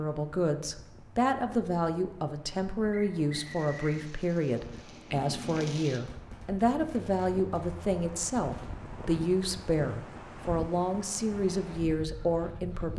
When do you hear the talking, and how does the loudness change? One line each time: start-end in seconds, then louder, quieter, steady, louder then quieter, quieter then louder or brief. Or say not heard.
0.0-12.9 steady.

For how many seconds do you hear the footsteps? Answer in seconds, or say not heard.
not heard.